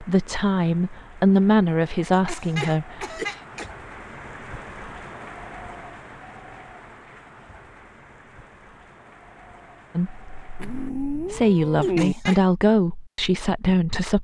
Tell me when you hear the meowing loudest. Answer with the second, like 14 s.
12 s.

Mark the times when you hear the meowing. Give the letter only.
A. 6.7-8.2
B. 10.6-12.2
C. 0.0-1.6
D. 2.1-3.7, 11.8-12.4
B.